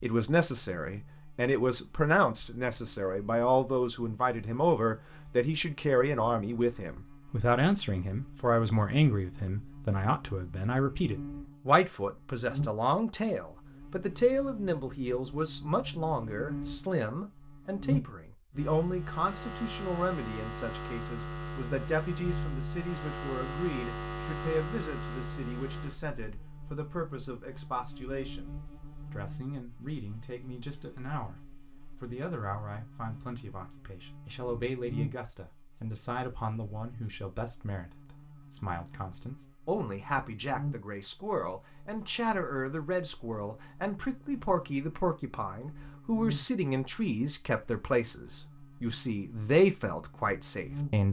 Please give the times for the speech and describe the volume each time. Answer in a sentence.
The speech can be heard from 0.0 to 51.0 s, getting quieter then louder.